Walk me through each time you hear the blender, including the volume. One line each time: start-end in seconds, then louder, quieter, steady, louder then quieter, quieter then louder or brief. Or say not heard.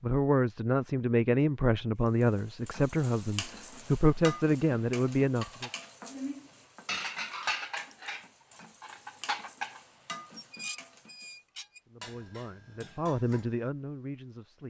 not heard.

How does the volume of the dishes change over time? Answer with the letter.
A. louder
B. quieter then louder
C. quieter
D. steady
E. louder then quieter
C.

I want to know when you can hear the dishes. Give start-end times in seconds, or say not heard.
5.4-13.6.